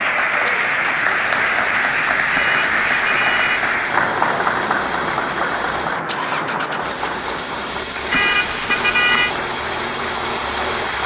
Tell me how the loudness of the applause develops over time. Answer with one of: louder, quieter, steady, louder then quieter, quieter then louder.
quieter.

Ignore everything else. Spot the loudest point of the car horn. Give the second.
9 s.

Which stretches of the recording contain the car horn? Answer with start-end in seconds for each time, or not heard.
2.3-3.7, 8.1-9.3.